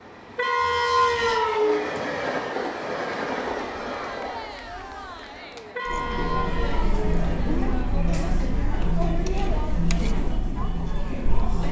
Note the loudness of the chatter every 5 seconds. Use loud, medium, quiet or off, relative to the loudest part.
medium, loud, loud.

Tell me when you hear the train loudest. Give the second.
1 s.